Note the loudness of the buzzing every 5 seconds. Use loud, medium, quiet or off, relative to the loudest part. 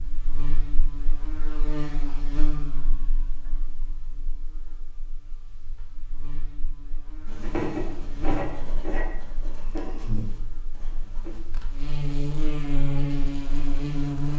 medium, quiet, loud.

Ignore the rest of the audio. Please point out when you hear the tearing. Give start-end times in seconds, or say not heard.
11.5-11.9.